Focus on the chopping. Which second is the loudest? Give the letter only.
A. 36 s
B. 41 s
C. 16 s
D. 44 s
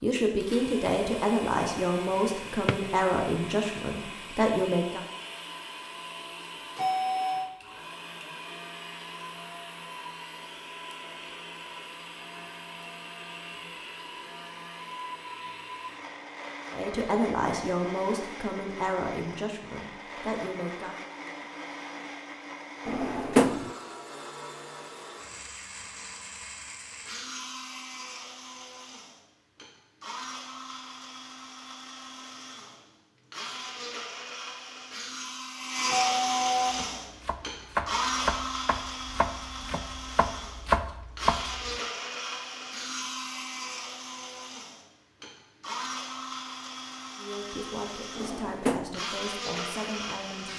B.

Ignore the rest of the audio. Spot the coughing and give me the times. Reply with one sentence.
The coughing can't be heard in this clip.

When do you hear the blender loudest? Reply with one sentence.
The volume of the blender peaks at 36 seconds.